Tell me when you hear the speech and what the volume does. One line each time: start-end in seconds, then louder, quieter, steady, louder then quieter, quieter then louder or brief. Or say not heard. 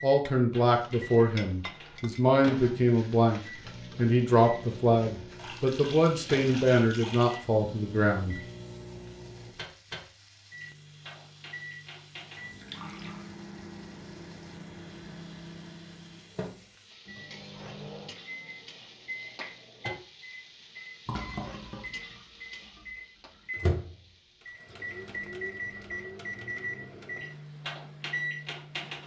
0.0-8.4 steady.